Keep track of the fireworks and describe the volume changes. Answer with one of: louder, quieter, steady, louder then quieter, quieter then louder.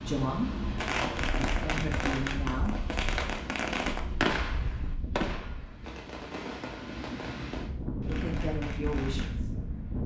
quieter.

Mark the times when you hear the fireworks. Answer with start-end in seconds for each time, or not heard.
0.8-9.3.